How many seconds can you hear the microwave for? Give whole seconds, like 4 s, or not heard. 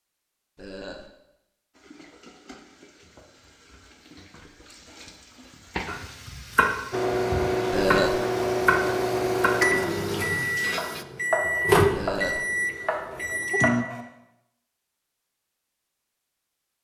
7 s.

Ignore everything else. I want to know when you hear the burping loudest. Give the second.
8 s.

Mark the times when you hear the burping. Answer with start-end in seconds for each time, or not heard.
0.6-1.1, 7.7-8.2, 11.9-12.4.